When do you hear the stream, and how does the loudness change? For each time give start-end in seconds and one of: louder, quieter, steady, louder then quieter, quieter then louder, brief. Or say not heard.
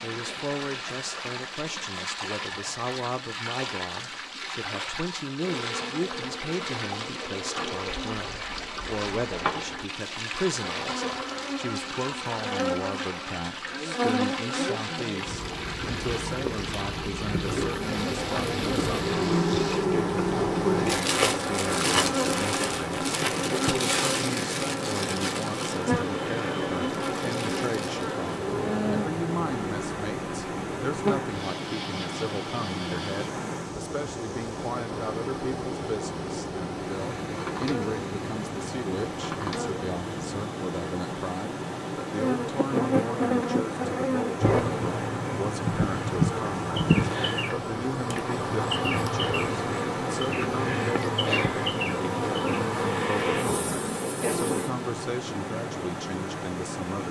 0.0-57.0 steady.